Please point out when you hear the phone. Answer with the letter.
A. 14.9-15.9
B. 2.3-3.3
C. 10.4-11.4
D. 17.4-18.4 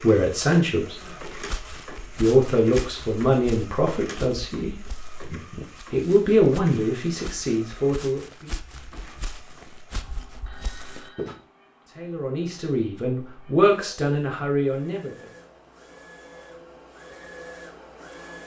C.